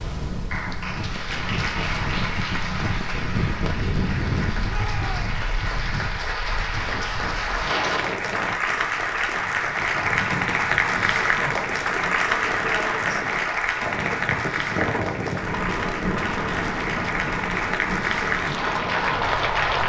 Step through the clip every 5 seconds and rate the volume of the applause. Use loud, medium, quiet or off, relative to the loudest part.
medium, loud, loud, loud.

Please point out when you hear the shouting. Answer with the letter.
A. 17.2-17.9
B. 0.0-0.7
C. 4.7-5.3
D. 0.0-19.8
C.